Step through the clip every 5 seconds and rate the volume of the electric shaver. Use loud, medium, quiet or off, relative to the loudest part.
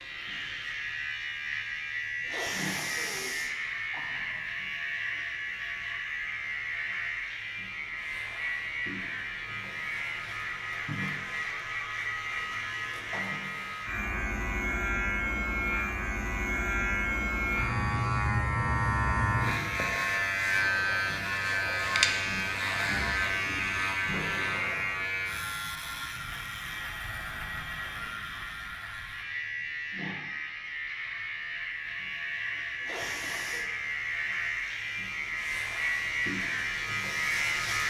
medium, medium, medium, loud, loud, medium, medium, loud.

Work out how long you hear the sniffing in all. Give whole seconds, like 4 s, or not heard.
3 s.